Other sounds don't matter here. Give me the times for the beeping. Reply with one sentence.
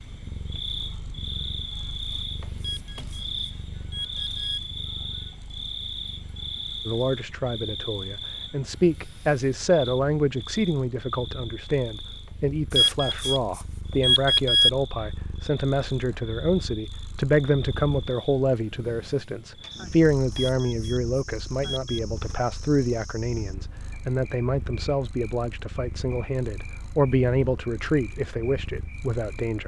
You can hear the beeping from 2.6 to 4.6 s, from 12.7 to 14.7 s and from 20.5 to 22.0 s.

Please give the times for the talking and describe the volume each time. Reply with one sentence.
You can hear the talking from 6.8 to 29.6 s, at a steady volume.